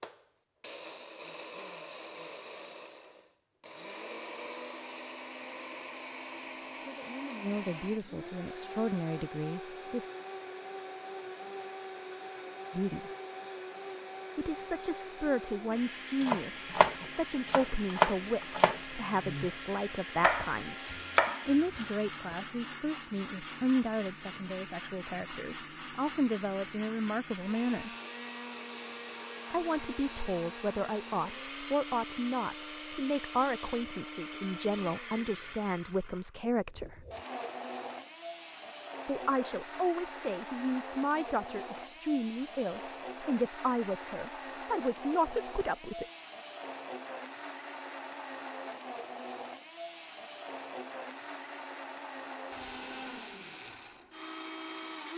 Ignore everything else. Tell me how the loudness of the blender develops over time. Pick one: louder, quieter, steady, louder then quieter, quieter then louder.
steady.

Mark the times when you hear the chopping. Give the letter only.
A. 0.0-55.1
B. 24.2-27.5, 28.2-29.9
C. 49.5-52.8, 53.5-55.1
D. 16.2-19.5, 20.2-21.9
D.